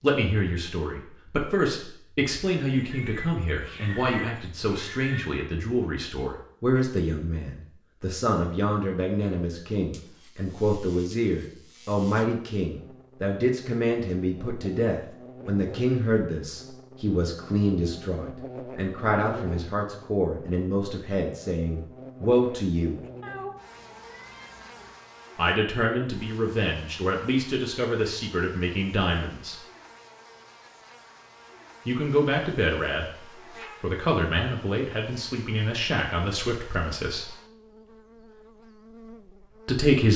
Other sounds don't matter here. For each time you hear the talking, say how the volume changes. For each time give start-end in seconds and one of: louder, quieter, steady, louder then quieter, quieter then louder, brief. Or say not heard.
0.0-23.0 steady
25.4-29.6 steady
31.9-37.3 steady
39.6-40.1 brief.